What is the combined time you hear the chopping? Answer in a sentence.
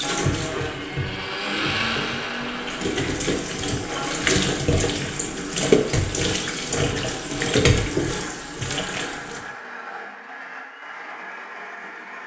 The chopping can't be heard in this clip.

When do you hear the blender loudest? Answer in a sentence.
The volume of the blender peaks at 2 seconds.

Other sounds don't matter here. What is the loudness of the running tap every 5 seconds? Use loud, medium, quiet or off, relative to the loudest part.
loud, loud, off.